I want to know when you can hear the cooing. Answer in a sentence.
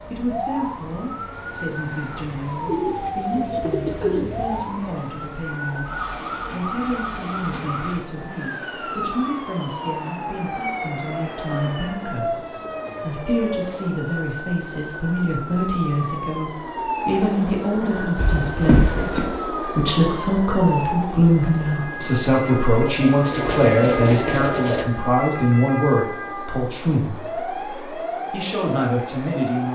You can hear the cooing from 2.6 to 4.6 s and from 22.9 to 24.9 s.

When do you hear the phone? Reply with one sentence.
You can hear the phone from 18.1 to 19.2 s.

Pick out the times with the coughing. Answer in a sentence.
You can't hear the coughing here.